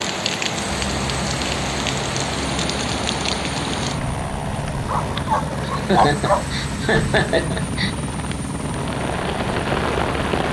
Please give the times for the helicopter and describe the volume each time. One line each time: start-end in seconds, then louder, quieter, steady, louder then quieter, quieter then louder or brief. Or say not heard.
0.0-10.4 steady.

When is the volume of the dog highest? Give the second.
6 s.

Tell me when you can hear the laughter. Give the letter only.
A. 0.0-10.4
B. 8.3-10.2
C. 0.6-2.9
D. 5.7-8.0
D.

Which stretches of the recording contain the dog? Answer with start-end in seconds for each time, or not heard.
4.8-6.8.